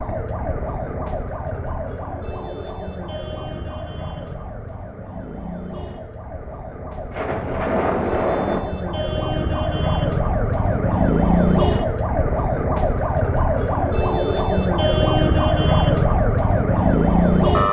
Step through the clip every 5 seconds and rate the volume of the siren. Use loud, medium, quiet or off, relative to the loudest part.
quiet, medium, loud, loud.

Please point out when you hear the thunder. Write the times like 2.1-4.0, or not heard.
7.1-8.6.